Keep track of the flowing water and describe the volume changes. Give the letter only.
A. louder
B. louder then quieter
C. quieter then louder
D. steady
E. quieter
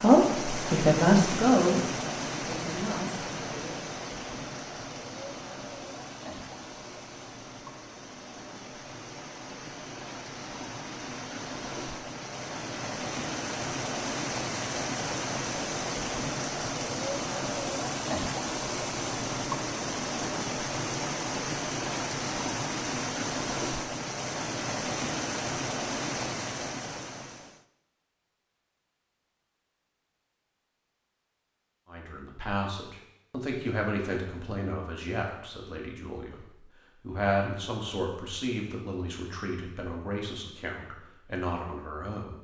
C.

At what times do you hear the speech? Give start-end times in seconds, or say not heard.
0.0-3.8, 31.9-42.4.